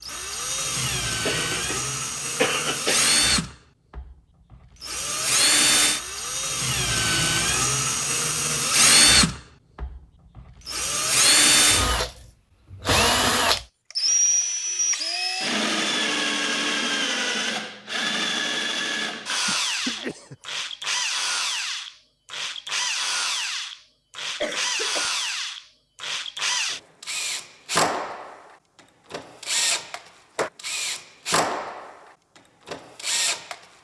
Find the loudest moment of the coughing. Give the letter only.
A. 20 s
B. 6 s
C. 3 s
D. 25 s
C.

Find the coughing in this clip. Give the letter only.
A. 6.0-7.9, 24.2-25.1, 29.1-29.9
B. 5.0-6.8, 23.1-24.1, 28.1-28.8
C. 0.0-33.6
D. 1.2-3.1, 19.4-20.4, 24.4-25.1
D.